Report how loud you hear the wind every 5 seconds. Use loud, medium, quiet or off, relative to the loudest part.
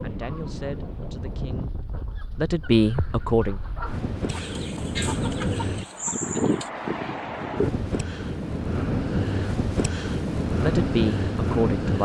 medium, loud, loud.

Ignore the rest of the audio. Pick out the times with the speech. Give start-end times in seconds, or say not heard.
0.0-1.8, 2.4-3.6, 10.6-12.0.